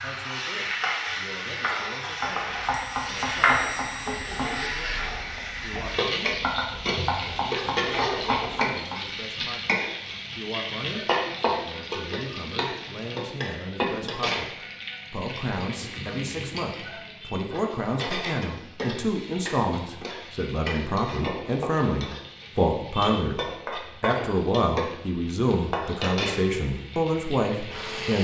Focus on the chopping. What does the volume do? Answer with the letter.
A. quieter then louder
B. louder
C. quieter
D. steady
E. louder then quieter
A.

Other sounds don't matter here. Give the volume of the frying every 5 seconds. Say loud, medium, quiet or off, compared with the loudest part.
loud, loud, loud, medium, medium, medium.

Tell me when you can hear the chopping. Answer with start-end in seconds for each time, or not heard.
2.2-9.0.